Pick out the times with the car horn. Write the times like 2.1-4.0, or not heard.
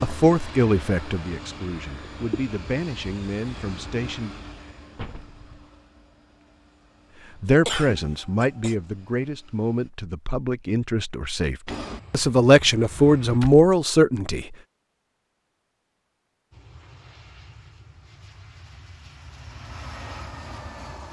not heard.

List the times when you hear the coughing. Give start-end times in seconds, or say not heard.
7.7-8.8.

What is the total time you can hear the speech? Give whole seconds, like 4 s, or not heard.
11 s.